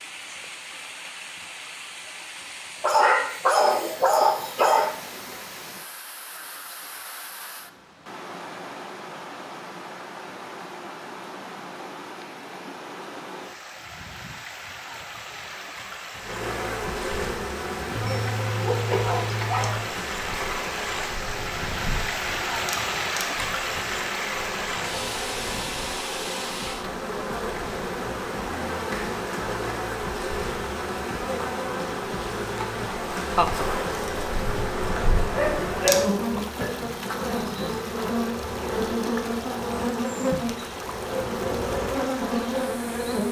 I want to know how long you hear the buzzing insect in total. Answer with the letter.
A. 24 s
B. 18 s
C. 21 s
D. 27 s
D.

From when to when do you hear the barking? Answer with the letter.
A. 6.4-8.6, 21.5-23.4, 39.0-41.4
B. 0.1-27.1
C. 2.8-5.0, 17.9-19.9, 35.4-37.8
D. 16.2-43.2
C.